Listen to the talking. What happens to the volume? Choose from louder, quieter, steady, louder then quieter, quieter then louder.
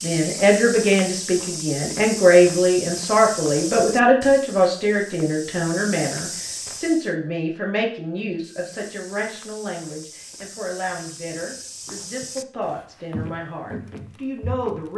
quieter.